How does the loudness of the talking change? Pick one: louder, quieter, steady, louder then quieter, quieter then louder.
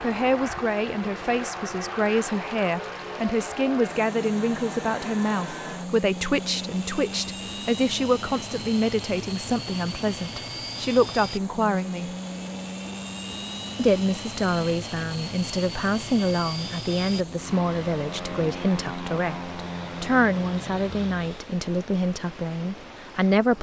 steady.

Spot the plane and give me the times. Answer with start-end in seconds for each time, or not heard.
0.0-21.6.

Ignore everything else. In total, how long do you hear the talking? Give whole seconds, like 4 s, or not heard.
22 s.